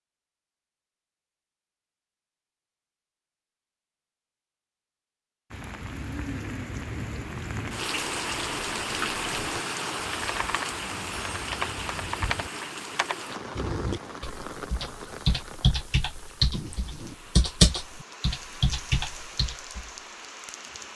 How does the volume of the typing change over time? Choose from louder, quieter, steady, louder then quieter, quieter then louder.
louder.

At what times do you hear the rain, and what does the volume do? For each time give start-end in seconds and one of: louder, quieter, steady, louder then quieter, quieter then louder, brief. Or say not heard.
5.5-20.9 quieter.